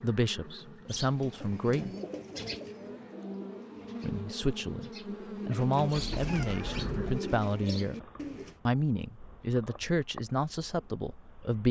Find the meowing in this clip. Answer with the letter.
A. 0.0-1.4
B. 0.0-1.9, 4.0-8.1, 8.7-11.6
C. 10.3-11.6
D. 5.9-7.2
D.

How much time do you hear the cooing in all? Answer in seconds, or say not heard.
8 s.